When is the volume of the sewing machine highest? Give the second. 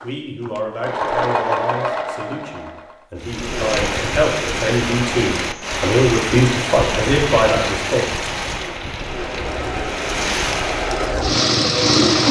12 s.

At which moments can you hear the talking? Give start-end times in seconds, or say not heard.
0.0-8.1.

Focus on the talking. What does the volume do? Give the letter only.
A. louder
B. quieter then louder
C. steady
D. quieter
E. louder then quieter
B.